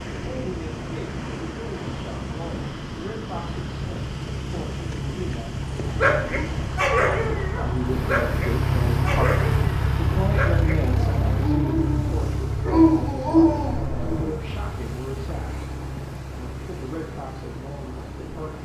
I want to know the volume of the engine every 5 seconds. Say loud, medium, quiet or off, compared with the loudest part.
medium, loud, loud, medium.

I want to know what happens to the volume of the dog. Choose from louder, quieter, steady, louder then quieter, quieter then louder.
quieter then louder.